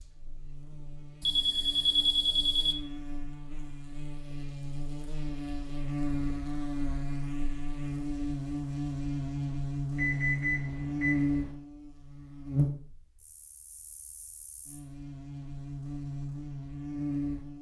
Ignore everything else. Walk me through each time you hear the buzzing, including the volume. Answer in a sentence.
The buzzing can be heard from 0.0 to 17.5 s, getting louder then quieter.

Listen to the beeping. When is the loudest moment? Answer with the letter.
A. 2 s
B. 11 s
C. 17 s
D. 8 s
A.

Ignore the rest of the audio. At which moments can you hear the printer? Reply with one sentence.
You can't hear the printer here.